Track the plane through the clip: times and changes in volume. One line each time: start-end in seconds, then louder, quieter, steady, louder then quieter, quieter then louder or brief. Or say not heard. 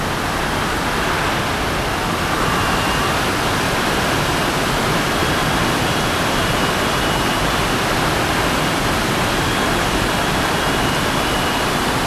0.0-12.0 steady.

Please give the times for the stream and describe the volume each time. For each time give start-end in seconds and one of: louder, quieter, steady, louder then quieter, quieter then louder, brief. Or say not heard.
0.0-12.0 steady.